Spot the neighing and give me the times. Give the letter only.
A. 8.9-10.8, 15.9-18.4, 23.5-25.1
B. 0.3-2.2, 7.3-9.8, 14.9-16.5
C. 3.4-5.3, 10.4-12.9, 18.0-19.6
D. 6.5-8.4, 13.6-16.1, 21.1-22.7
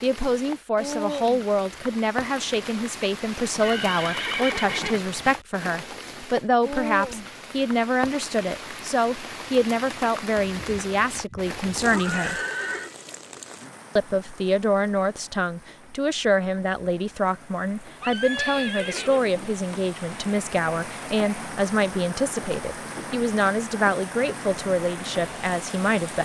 C.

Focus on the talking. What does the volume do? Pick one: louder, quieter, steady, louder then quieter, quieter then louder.
steady.